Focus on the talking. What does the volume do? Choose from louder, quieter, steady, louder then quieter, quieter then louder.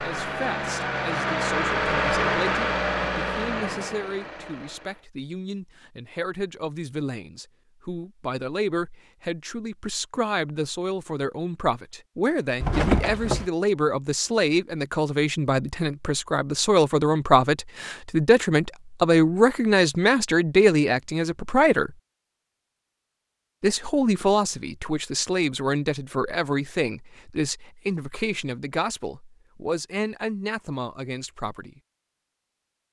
louder then quieter.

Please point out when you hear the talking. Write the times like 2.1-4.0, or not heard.
0.0-21.9, 23.6-31.8.